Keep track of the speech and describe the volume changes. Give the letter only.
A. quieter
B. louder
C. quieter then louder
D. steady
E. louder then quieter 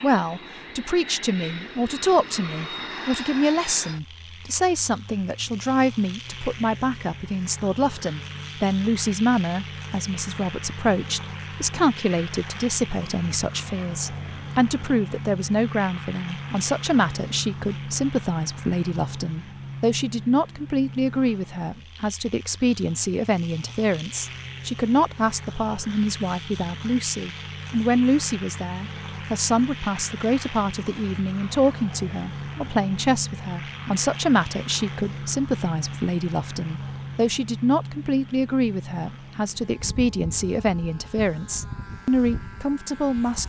D.